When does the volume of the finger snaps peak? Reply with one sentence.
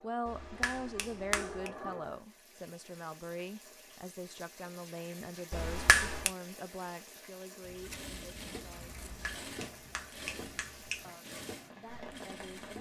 The loudest moment of the finger snaps is at 6 seconds.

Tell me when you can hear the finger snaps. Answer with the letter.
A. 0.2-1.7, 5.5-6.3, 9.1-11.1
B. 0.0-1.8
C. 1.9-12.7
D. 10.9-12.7
A.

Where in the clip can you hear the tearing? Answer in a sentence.
You can't hear the tearing here.